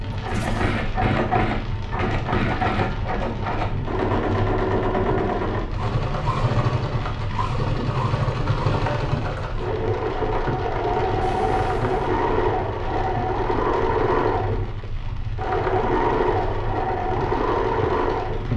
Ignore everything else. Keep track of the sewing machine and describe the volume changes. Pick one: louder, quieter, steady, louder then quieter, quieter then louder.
steady.